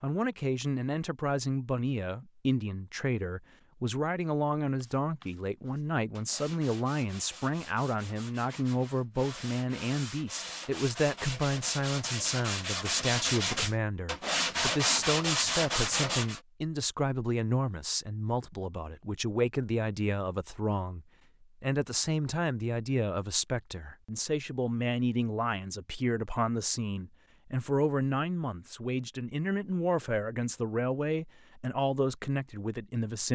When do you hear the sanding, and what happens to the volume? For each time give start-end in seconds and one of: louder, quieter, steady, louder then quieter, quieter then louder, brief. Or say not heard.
4.8-16.4 louder.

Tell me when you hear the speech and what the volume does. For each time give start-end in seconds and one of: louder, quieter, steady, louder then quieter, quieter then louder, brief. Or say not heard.
0.0-33.2 steady.